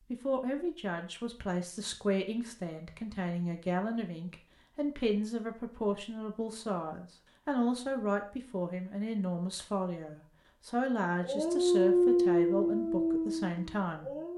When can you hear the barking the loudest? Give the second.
12 s.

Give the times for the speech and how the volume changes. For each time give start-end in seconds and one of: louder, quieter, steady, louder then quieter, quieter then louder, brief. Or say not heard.
0.1-14.2 steady.